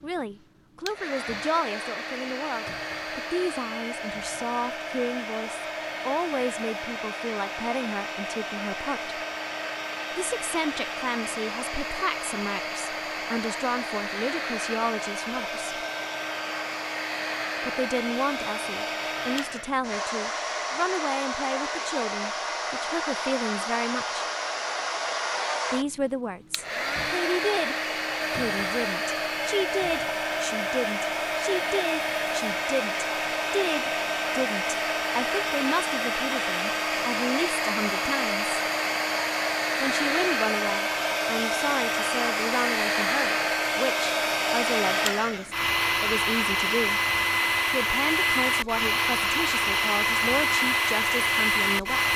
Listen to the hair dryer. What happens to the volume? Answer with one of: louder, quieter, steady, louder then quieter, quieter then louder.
louder.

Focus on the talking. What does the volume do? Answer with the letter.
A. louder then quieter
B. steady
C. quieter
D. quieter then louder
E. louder
B.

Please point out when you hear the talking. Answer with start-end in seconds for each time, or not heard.
0.0-9.2, 10.2-15.8, 17.6-24.2, 25.7-38.5, 39.8-47.0, 47.7-52.1.